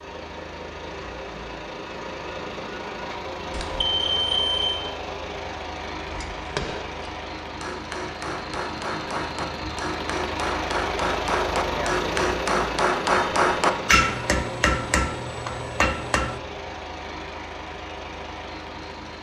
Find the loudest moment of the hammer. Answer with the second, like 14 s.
14 s.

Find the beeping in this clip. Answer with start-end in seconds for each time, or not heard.
3.5-4.8.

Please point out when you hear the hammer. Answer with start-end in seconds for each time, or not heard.
6.0-16.4.